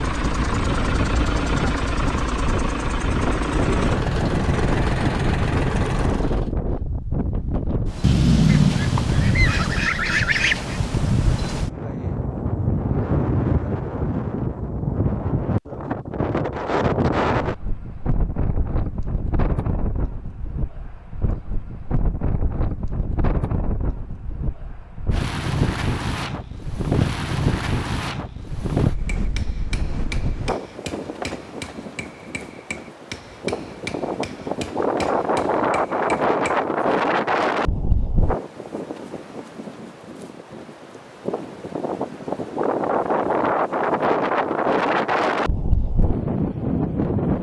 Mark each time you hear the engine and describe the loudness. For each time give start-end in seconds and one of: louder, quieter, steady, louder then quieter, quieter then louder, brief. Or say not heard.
0.0-6.5 steady.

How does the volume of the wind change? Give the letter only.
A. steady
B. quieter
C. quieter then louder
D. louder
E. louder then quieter
A.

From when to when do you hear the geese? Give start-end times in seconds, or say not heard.
8.0-10.8.